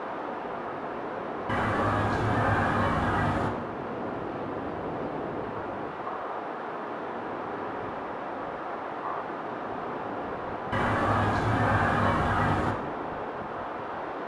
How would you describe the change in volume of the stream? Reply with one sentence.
The volume of the stream stays about the same.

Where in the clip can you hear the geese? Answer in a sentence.
You can hear the geese from 1.4 to 3.5 s and from 10.7 to 12.8 s.